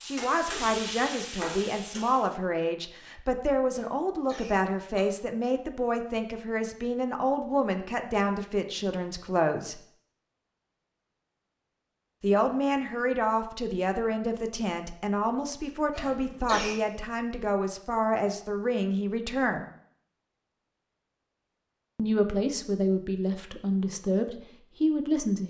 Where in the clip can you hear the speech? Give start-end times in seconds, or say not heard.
0.1-9.8, 12.2-19.6, 21.9-25.4.